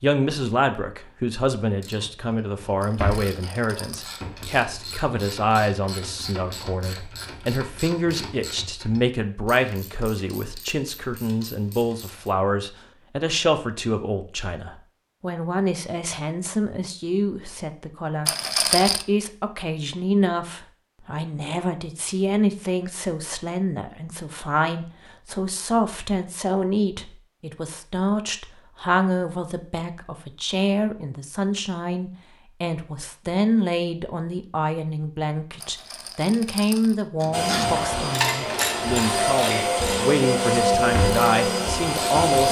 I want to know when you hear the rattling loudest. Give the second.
19 s.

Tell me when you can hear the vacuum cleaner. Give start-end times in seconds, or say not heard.
37.3-42.4.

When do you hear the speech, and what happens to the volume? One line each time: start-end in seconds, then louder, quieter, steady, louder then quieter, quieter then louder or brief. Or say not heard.
0.0-42.4 steady.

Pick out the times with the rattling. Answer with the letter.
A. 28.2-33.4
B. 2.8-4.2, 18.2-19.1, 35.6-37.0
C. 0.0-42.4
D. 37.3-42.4
B.